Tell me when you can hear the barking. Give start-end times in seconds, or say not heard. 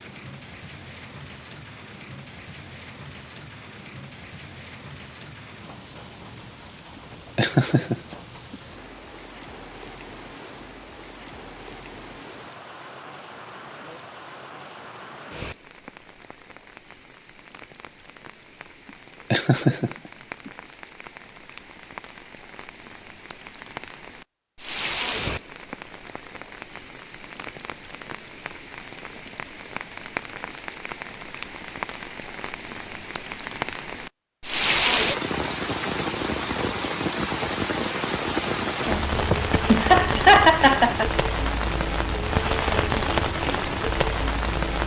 not heard.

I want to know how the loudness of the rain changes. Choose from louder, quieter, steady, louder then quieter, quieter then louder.
louder.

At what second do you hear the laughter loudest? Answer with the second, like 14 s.
40 s.